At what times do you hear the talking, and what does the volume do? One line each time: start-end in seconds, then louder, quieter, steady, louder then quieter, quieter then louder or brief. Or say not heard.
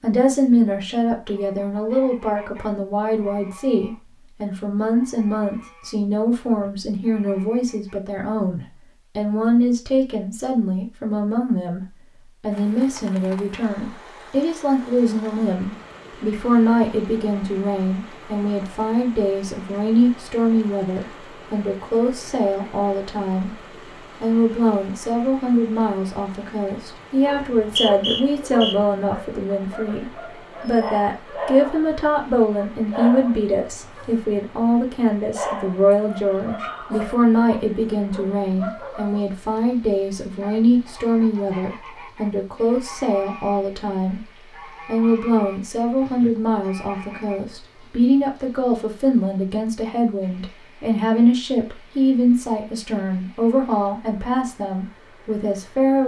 0.0-56.0 steady.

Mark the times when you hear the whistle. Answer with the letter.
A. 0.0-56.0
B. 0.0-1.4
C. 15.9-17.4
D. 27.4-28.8
D.